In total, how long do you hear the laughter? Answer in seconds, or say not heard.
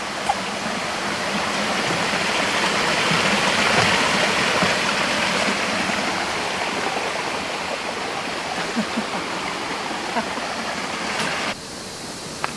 2 s.